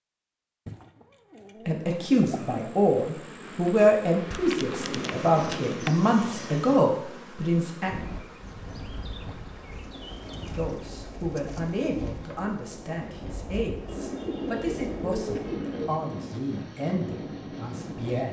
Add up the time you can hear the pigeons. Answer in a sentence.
You can hear the pigeons for 8 seconds altogether.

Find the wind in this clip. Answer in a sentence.
You can hear the wind from 7.8 to 18.2 s.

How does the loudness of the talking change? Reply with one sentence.
The volume of the talking goes down.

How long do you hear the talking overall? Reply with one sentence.
The talking can be heard for 14 seconds in total.